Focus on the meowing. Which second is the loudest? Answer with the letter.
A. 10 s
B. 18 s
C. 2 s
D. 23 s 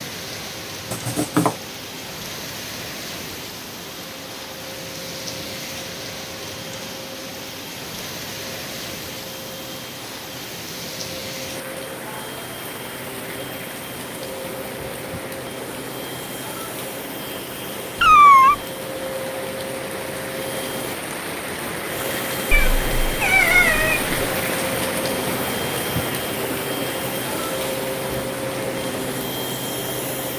B.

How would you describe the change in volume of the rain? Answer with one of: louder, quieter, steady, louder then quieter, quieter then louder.
louder.